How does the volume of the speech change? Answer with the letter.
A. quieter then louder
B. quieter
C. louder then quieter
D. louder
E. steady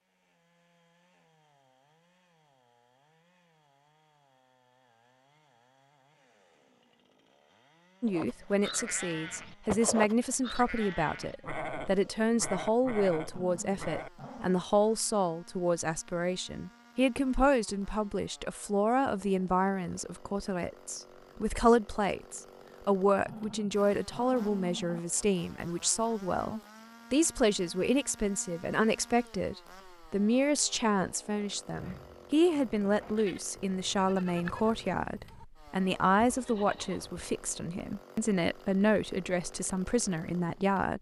E.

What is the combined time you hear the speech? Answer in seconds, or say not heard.
33 s.